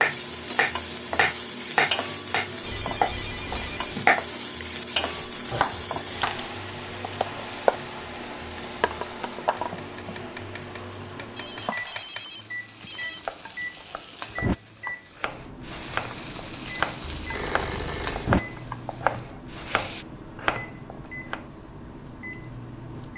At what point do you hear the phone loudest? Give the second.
18 s.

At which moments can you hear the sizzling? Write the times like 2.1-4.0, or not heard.
0.0-20.1.